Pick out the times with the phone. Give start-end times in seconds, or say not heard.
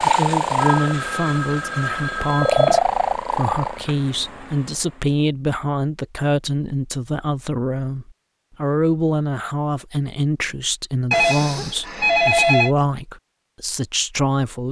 0.6-2.8, 11.1-12.8.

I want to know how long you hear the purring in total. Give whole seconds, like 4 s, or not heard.
5 s.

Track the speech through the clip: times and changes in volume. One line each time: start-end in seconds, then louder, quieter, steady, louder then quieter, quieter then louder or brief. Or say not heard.
0.0-14.6 steady.